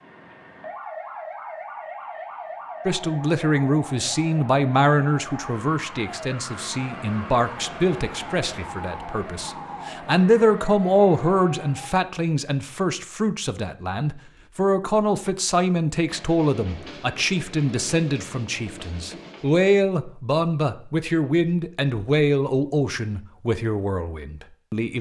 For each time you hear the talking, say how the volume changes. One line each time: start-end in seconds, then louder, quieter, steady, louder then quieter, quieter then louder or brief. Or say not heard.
2.9-24.9 steady.